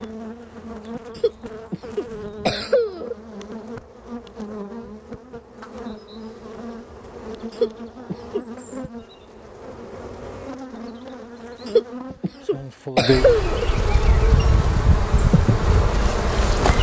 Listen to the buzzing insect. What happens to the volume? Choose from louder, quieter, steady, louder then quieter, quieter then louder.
louder.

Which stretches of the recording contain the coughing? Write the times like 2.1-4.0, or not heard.
1.1-3.1, 7.5-8.4, 11.7-13.7.